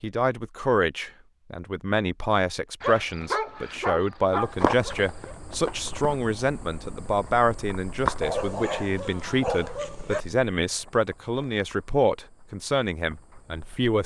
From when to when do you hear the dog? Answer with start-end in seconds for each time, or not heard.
2.8-5.3, 8.2-10.2.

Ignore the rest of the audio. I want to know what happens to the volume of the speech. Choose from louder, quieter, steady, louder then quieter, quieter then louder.
steady.